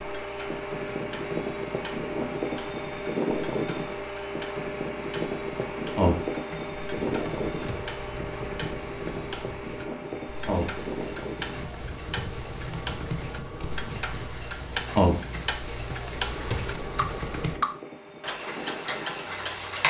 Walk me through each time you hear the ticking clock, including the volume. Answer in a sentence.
You can hear the ticking clock from 0.0 to 19.8 s, getting louder.